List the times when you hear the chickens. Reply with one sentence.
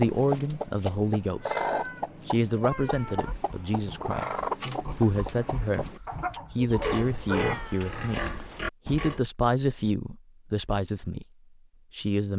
You can hear the chickens from 0.0 to 7.5 s.